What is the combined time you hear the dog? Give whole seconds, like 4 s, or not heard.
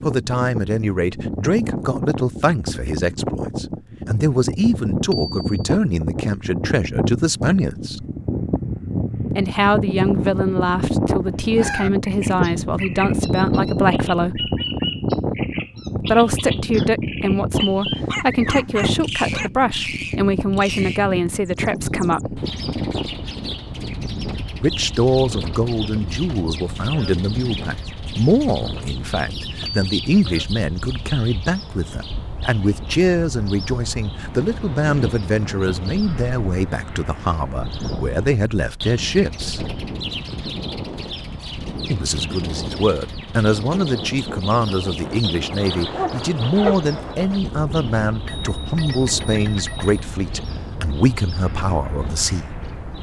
3 s.